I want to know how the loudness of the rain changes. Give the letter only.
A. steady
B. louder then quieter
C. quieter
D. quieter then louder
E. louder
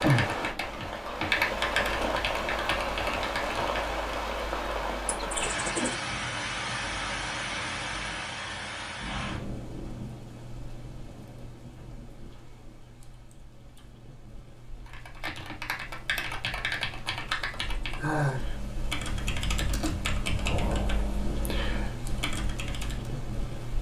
D.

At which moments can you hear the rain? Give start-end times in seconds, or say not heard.
0.0-23.7.